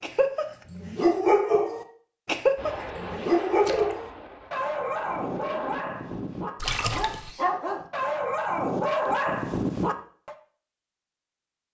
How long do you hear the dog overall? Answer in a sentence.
The dog can be heard for 10 seconds in total.